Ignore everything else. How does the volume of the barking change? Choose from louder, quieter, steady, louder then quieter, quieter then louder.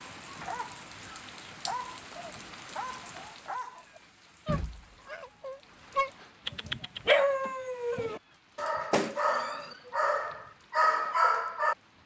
louder.